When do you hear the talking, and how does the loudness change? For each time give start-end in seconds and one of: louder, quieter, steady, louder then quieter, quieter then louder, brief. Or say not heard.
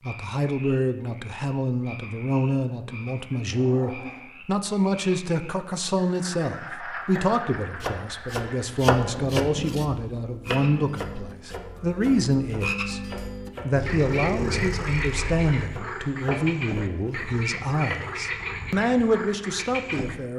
0.0-20.3 steady.